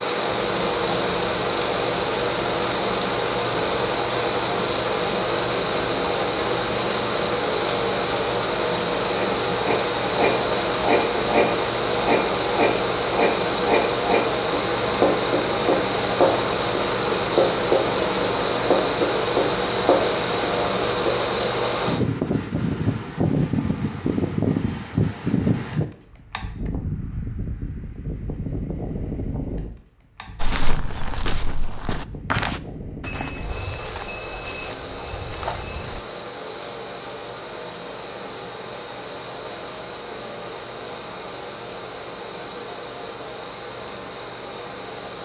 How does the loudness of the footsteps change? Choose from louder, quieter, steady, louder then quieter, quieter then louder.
louder then quieter.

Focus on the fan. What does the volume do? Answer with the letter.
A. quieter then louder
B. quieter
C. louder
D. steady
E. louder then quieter
B.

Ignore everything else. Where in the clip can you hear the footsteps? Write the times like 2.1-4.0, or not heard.
30.4-36.0.